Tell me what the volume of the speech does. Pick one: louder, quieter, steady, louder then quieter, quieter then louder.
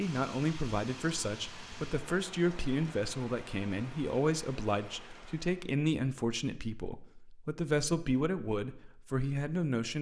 steady.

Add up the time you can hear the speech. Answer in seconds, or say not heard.
10 s.